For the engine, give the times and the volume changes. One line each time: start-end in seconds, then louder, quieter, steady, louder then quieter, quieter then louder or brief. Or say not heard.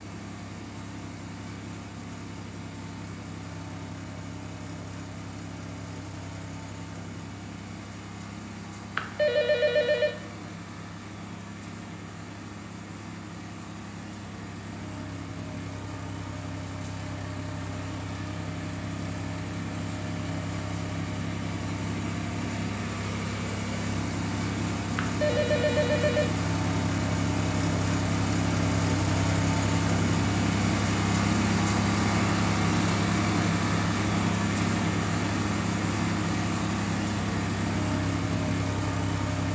0.0-39.4 louder.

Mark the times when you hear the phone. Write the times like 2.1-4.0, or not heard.
8.9-10.2, 24.9-26.3.